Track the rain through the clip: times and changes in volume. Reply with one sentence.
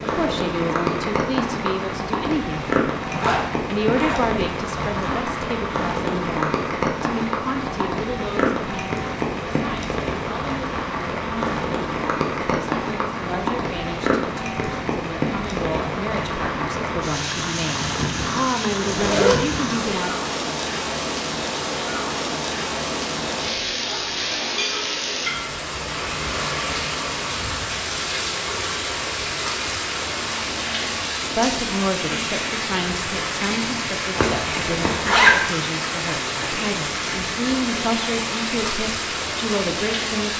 The rain can be heard from 0.0 to 40.3 s, at a steady volume.